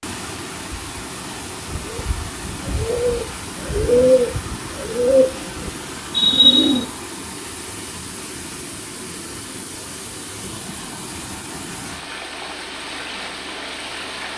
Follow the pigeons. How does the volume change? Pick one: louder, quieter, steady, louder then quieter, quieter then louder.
louder.